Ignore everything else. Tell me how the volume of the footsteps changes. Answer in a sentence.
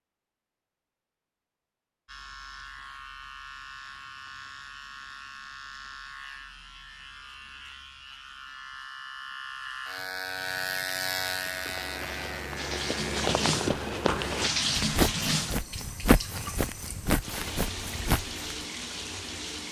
The loudness of the footsteps goes up.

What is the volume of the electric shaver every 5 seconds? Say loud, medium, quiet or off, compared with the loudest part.
medium, medium, loud, off.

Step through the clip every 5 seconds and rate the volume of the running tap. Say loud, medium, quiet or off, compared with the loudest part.
off, off, loud, medium.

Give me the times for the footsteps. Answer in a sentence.
You can hear the footsteps from 11.4 to 18.6 s.